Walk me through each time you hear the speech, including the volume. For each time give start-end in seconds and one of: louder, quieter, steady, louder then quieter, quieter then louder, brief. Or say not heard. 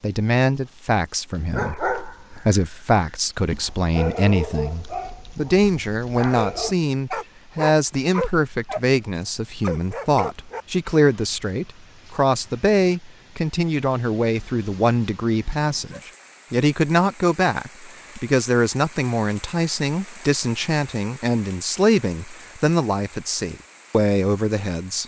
0.0-25.0 steady.